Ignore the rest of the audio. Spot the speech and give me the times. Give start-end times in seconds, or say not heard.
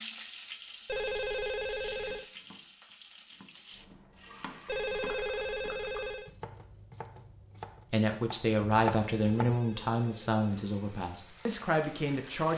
7.9-12.5.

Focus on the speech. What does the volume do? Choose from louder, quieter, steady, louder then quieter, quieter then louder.
quieter then louder.